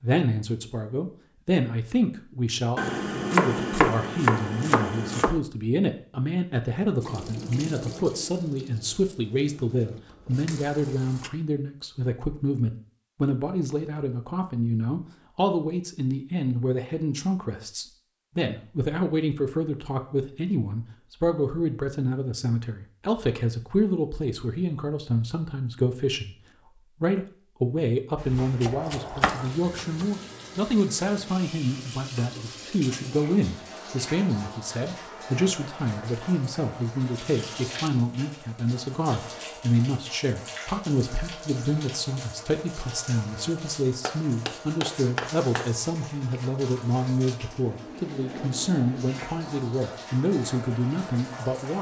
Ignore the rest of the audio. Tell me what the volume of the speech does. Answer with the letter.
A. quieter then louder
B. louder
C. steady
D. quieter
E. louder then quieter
C.